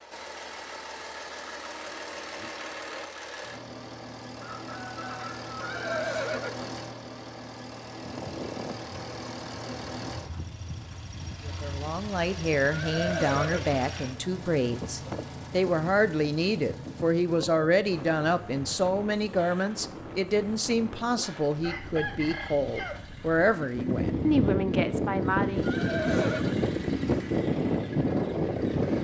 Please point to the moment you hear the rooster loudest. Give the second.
22 s.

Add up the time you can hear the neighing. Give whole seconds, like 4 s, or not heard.
3 s.